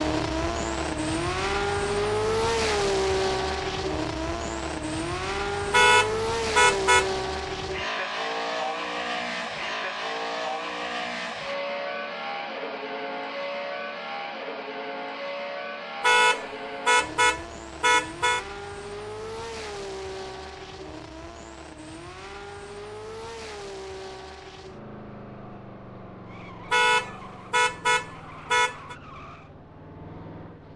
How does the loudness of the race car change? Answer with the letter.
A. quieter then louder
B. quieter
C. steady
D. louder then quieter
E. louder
B.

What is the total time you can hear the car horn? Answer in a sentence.
You can hear the car horn for 6 seconds altogether.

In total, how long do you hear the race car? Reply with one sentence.
The race car can be heard for 31 seconds in total.